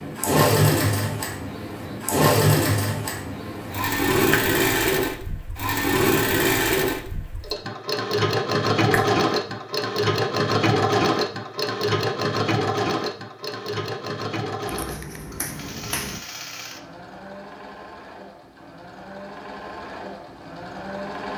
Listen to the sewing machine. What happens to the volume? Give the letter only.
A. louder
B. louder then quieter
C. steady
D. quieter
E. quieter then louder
D.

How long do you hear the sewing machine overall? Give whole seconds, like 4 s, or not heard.
21 s.